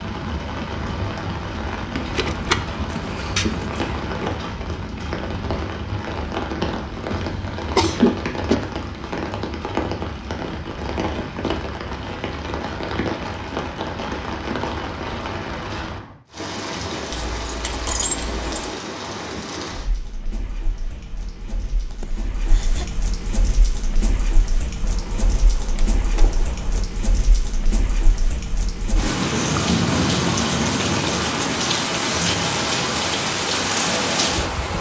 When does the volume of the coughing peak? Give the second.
8 s.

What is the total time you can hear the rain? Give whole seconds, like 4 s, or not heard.
35 s.